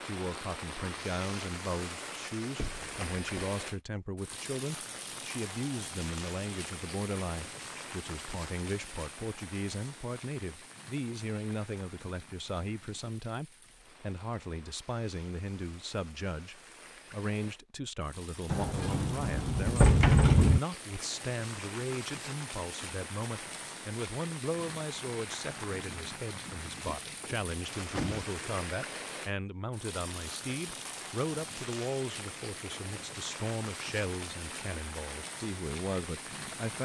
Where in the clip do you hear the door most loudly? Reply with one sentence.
The volume of the door peaks at 20 seconds.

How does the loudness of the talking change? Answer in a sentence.
The volume of the talking stays about the same.